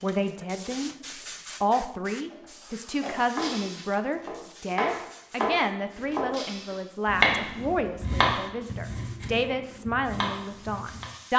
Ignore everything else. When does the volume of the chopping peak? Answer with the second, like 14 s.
7 s.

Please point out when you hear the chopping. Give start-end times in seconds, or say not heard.
2.2-3.5, 4.2-11.1.